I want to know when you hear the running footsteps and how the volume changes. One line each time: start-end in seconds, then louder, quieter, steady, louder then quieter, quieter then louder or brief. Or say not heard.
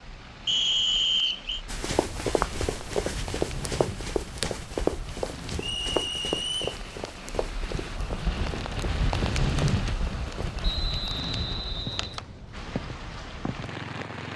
1.6-10.6 quieter.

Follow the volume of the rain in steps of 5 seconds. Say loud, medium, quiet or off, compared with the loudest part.
medium, loud, loud.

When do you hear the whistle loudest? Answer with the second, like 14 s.
1 s.